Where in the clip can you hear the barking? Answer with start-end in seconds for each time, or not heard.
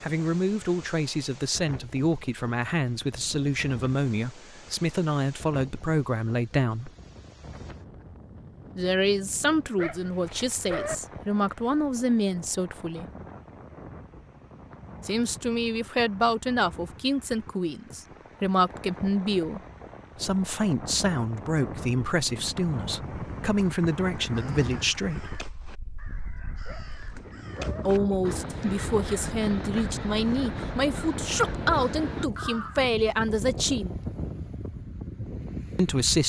9.8-10.9, 26.6-27.9.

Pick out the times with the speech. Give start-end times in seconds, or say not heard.
0.0-6.9, 8.8-13.1, 15.1-25.4, 27.9-34.0, 35.8-36.2.